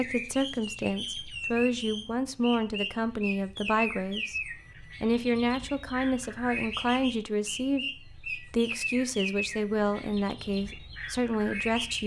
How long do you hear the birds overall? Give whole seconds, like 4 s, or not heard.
12 s.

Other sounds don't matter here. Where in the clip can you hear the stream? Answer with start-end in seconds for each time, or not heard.
not heard.